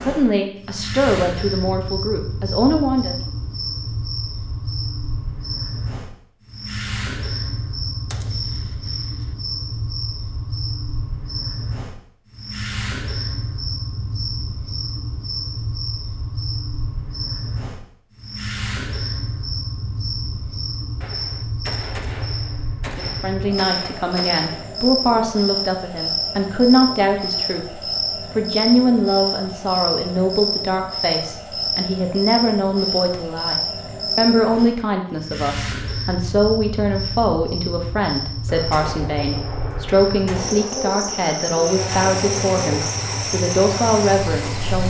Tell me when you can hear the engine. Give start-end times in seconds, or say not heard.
41.6-44.8.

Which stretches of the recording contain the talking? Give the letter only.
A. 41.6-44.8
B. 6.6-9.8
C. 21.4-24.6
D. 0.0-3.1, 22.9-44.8
D.